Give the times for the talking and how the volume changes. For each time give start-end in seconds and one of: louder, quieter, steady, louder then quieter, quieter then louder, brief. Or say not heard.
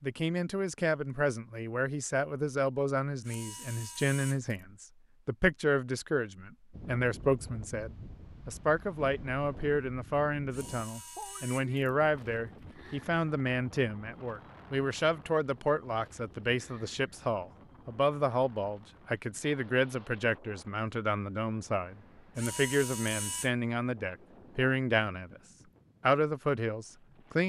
0.0-25.4 steady
26.0-27.4 brief.